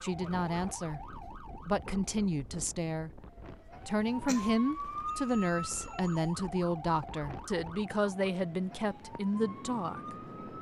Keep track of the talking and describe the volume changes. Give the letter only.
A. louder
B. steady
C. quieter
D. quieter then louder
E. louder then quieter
B.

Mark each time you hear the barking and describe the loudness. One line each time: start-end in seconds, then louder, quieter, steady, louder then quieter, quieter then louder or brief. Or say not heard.
not heard.